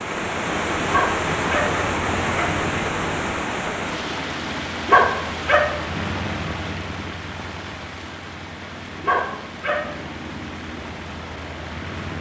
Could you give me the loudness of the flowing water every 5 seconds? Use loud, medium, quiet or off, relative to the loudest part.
loud, medium, quiet.